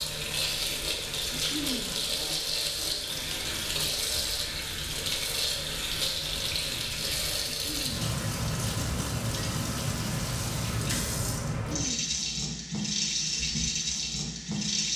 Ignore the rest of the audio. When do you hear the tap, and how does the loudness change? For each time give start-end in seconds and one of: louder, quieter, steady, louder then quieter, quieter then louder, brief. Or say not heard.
0.0-14.9 steady.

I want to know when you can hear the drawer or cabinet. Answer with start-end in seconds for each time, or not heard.
not heard.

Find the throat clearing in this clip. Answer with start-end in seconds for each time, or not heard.
1.3-2.0, 7.5-8.0, 11.7-12.2.